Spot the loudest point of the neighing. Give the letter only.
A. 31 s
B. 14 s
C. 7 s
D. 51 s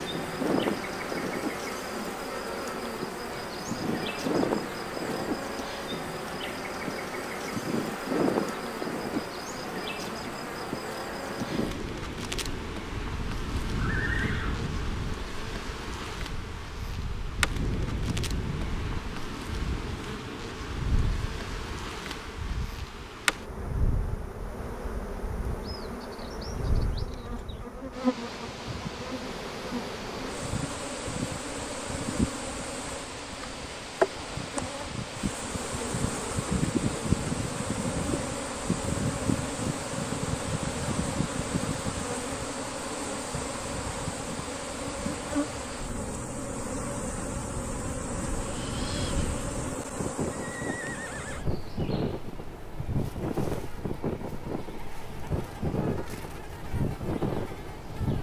B.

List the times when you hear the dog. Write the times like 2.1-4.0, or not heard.
not heard.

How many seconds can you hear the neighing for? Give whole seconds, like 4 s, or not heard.
2 s.